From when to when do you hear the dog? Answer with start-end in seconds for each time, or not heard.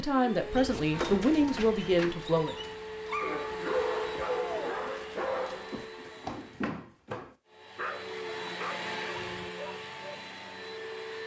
0.4-10.2.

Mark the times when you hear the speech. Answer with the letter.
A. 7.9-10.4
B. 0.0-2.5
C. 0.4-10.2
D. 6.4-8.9
B.